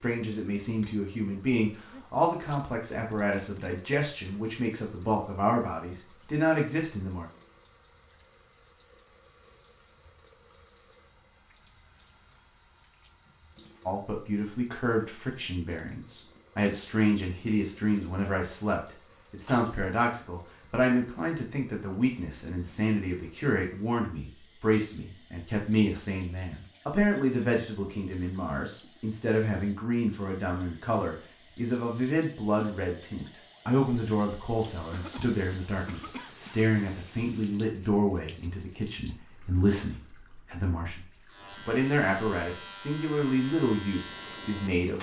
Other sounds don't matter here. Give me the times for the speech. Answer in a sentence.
The speech can be heard from 0.0 to 7.2 s, from 13.8 to 41.0 s and from 41.6 to 44.9 s.